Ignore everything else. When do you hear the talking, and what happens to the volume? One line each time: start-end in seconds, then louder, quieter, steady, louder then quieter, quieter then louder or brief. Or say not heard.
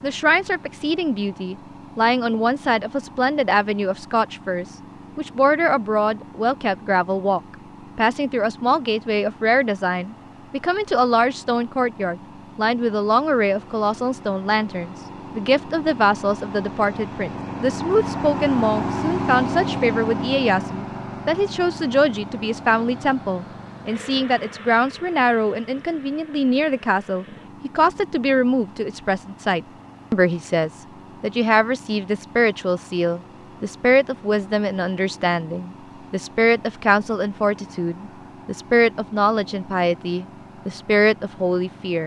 0.0-42.0 steady.